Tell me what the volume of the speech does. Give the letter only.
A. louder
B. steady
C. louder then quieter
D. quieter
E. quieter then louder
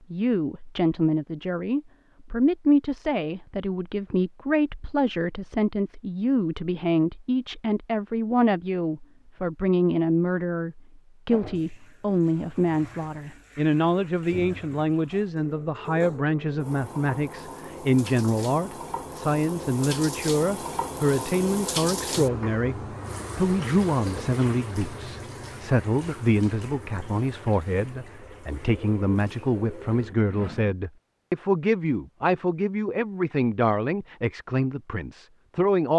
B.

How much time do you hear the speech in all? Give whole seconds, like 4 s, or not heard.
36 s.